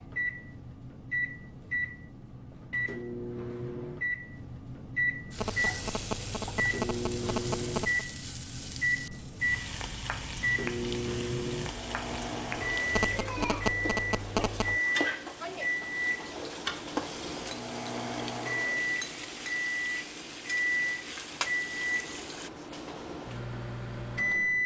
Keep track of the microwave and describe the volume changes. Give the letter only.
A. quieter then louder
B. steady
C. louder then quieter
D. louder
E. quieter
B.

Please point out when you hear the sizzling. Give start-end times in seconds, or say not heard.
5.3-22.5.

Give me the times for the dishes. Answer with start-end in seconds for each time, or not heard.
not heard.